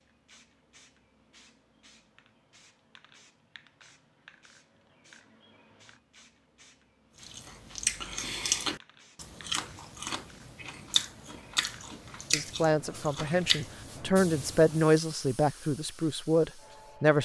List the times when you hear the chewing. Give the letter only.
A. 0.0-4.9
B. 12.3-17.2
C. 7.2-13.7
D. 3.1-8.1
C.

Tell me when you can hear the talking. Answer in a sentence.
The talking can be heard from 12.3 to 17.2 s.